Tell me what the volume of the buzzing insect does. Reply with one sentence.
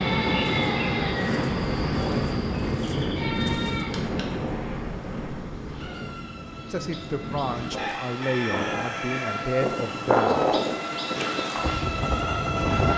The loudness of the buzzing insect goes down, then up.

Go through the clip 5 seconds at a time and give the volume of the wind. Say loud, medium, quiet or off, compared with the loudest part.
loud, medium, loud.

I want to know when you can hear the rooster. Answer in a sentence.
You can hear the rooster from 7.8 to 9.4 s.